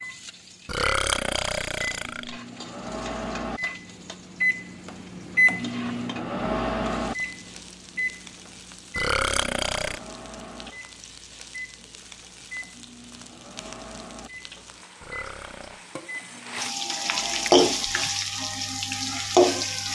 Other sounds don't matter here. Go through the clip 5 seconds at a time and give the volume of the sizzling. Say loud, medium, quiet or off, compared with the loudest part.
quiet, quiet, quiet, loud.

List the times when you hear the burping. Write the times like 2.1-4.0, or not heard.
0.7-2.4, 8.9-10.0, 15.0-15.8.